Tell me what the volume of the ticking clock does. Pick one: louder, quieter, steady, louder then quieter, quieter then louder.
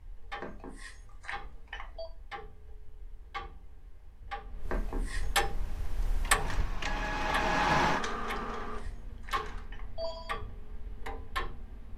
louder then quieter.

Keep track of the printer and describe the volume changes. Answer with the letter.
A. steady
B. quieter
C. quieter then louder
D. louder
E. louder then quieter
E.